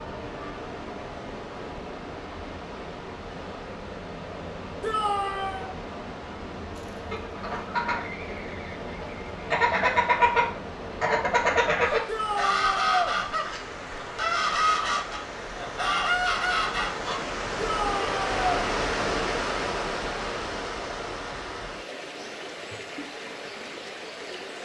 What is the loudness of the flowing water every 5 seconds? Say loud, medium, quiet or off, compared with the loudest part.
medium, medium, medium, loud, medium.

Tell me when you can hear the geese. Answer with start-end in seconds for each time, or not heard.
6.8-17.1.